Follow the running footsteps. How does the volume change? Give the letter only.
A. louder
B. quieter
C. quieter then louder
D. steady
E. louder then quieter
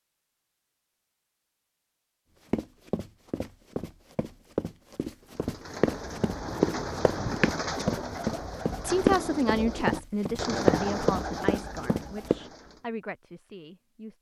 A.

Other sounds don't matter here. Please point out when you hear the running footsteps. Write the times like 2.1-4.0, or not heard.
2.5-12.4.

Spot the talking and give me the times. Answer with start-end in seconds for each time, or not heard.
8.8-14.1.